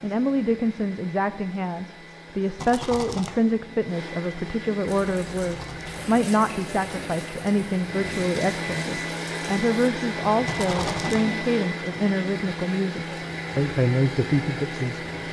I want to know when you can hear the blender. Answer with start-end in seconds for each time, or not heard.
0.0-15.2.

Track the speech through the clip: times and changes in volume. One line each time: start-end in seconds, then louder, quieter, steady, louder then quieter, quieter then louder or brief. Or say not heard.
0.0-15.1 steady.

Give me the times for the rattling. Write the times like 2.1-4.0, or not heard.
2.5-3.4, 5.4-6.0, 10.4-11.2.